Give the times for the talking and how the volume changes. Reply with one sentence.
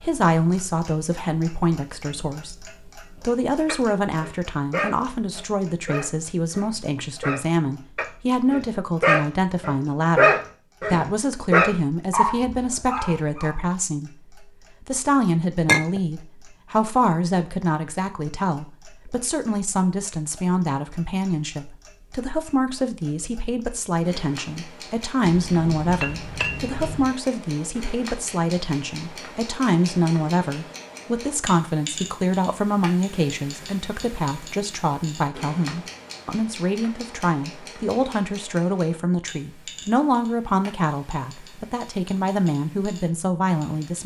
The talking can be heard from 0.0 to 44.0 s, at a steady volume.